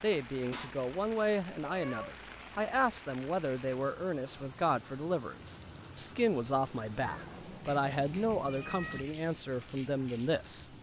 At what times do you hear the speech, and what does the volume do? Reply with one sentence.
You can hear the speech from 0.0 to 10.7 s, at a steady volume.